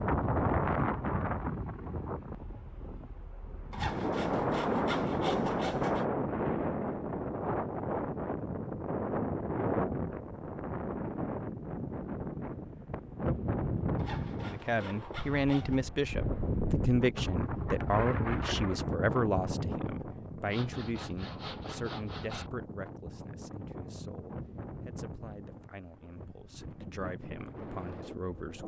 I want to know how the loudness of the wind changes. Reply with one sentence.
The volume of the wind goes down.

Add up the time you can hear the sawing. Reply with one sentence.
The sawing can be heard for 6 seconds in total.